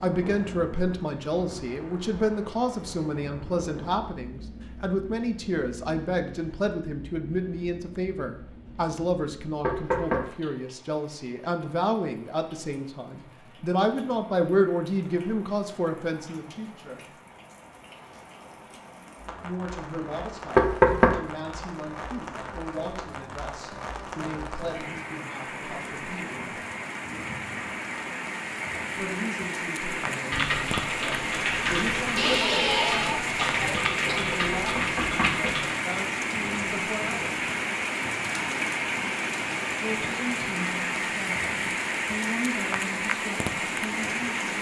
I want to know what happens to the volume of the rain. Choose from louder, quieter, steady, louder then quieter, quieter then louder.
quieter then louder.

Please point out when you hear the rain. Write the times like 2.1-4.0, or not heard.
0.0-44.5.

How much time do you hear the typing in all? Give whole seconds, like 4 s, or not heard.
6 s.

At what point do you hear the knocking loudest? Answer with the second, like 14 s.
21 s.